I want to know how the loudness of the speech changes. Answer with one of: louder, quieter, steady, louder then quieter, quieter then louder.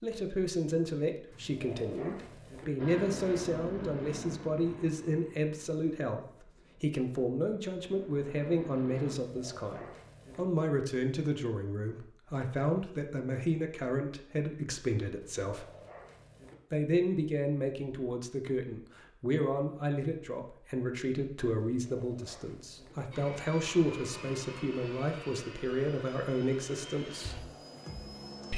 steady.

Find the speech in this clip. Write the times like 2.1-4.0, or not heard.
0.0-15.7, 16.7-27.4.